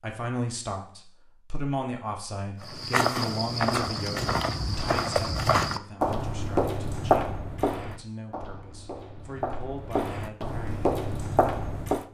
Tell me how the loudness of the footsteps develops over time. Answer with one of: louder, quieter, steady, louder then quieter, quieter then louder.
quieter then louder.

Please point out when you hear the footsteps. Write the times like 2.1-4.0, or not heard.
2.6-12.0.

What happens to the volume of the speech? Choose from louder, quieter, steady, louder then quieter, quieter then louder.
quieter.